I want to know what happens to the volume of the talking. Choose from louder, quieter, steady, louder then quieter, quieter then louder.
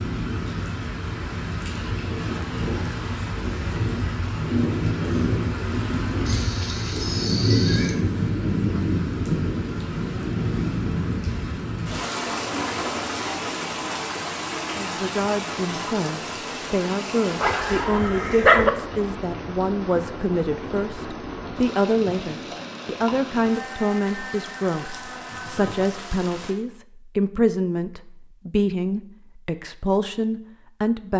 steady.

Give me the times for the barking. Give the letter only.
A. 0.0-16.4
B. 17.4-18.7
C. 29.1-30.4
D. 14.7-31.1
B.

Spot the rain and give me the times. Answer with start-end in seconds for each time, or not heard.
0.0-26.6.